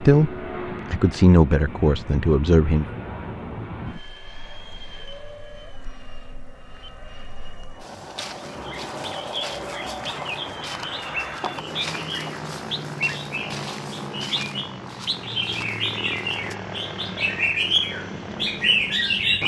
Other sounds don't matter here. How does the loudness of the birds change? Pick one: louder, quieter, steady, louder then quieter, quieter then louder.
louder.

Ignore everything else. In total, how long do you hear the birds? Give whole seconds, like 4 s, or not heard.
11 s.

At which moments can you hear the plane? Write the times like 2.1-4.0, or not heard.
0.0-19.4.